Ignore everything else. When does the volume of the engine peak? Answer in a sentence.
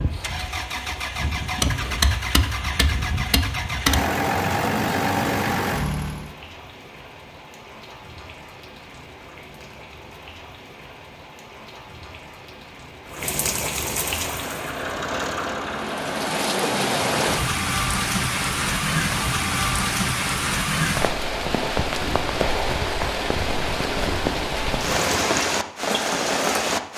The loudest moment of the engine is at 4 seconds.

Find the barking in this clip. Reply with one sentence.
The barking can't be heard in this clip.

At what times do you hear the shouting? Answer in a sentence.
You can't hear the shouting here.